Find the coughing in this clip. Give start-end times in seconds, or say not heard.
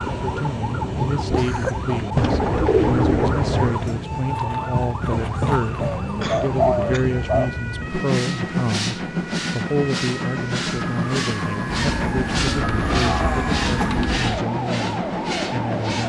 1.4-1.9, 6.2-7.0, 12.8-13.9.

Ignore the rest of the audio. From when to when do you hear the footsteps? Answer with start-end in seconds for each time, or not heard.
not heard.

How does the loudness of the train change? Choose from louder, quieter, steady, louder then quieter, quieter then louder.
steady.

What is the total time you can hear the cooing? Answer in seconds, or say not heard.
6 s.